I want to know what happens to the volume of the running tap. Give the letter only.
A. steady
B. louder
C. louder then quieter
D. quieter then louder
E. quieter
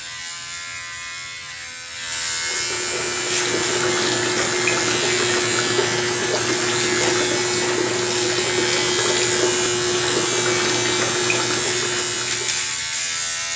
A.